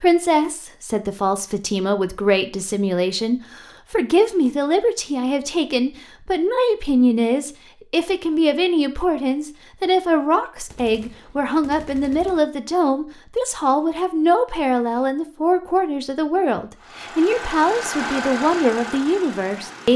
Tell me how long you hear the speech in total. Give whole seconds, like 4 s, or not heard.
20 s.